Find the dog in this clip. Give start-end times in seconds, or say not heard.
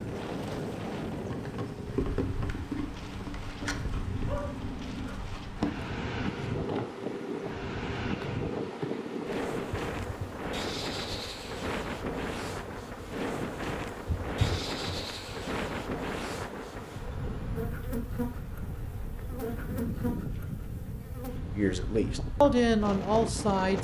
3.8-5.2.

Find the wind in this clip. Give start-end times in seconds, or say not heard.
0.0-23.7.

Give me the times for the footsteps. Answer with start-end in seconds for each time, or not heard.
not heard.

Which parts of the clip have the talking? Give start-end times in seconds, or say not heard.
21.6-23.7.